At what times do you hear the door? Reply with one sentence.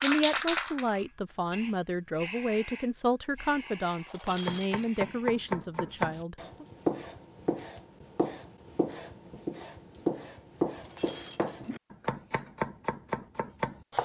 You can't hear the door here.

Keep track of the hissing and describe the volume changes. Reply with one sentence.
The loudness of the hissing goes down.